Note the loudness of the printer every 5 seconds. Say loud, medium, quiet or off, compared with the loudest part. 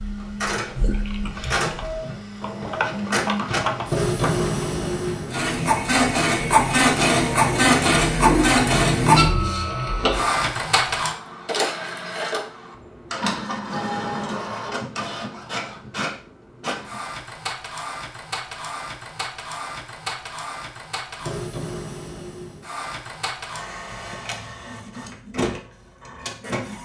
medium, loud, medium, quiet, quiet, quiet.